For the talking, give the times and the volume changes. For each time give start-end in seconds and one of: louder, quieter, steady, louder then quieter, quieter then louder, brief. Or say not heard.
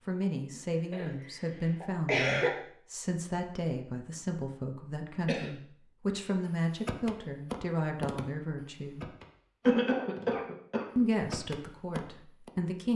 0.1-9.1 steady
10.9-12.9 brief.